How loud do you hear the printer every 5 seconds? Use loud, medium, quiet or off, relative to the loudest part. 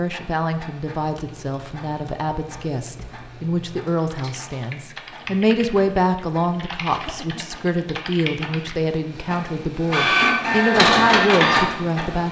quiet, quiet, loud.